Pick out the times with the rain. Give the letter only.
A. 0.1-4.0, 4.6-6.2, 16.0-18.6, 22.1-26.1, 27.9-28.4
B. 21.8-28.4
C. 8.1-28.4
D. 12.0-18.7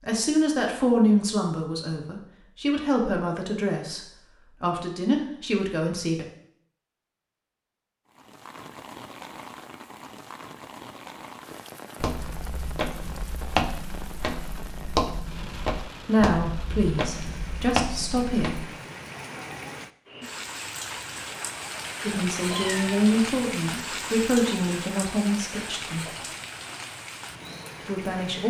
C.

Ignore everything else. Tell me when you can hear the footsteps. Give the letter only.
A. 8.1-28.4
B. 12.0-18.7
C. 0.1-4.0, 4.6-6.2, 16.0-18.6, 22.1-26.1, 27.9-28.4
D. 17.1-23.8
B.